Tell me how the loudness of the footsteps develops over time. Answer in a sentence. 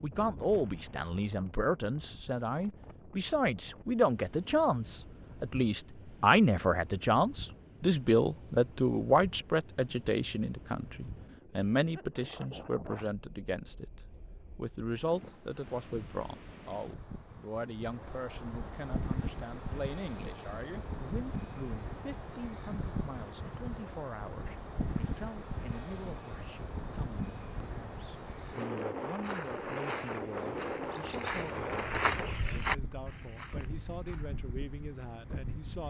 The volume of the footsteps goes up, then down.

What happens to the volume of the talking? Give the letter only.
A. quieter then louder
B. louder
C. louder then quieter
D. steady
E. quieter
E.